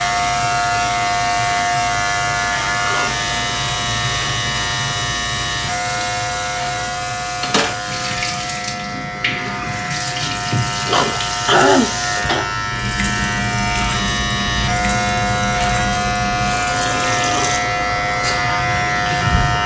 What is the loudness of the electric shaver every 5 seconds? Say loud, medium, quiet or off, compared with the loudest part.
loud, medium, loud, loud.